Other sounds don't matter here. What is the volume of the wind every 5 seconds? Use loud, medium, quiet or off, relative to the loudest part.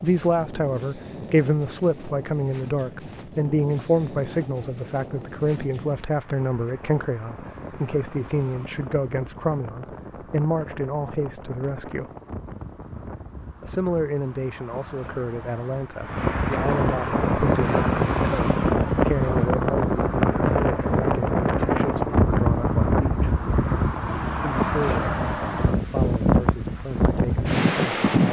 quiet, quiet, quiet, loud, loud, loud.